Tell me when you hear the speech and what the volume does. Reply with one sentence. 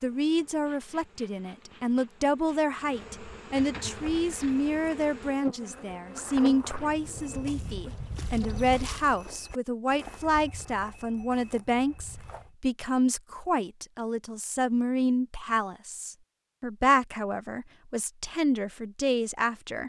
You can hear the speech from 0.0 to 19.8 s, at a steady volume.